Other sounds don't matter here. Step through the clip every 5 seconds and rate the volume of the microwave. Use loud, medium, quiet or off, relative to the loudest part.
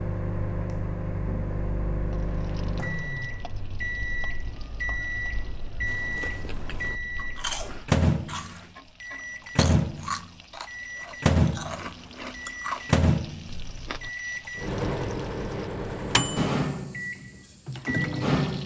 medium, loud, loud, loud.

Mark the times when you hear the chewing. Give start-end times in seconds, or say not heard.
5.8-14.1.